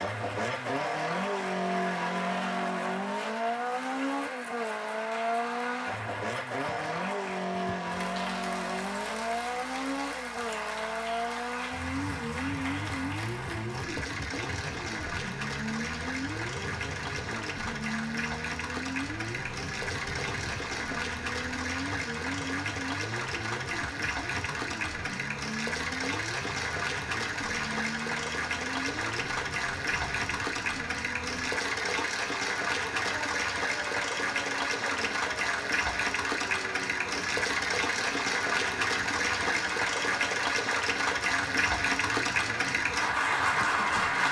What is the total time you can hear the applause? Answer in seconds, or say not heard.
44 s.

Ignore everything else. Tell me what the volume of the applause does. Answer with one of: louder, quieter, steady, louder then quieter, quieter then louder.
louder.